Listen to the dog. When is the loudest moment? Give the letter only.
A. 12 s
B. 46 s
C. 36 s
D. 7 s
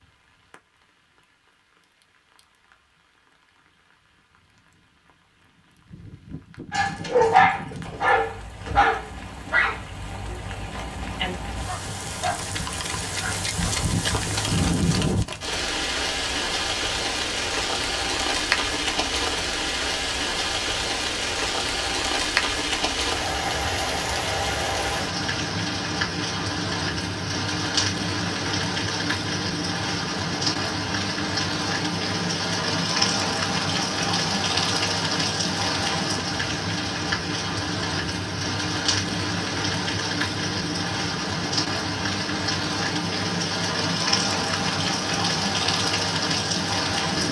D.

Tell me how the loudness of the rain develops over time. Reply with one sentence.
The loudness of the rain goes up.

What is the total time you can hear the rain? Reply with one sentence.
You can hear the rain for 47 seconds altogether.